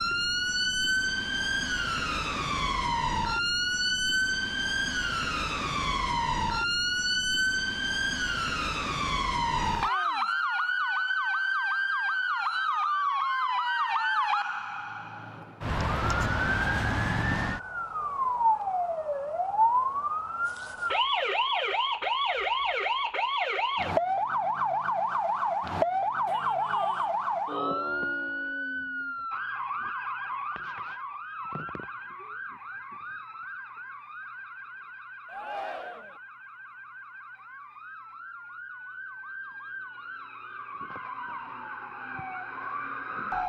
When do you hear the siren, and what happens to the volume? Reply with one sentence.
You can hear the siren from 0.0 to 43.4 s, getting quieter.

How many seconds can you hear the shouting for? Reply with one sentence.
The shouting can be heard for 3 seconds in total.